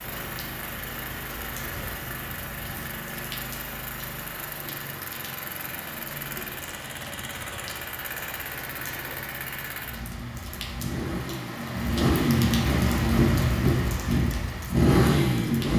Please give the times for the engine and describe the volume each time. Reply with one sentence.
You can hear the engine from 0.0 to 15.7 s, getting louder.